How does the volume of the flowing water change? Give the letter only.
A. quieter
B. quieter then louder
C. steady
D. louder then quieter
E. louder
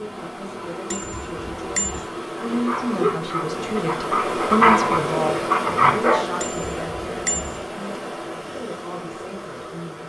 D.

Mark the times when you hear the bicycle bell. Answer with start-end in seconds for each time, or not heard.
0.9-2.0, 6.4-7.7.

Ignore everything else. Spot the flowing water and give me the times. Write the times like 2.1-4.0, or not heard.
0.0-10.0.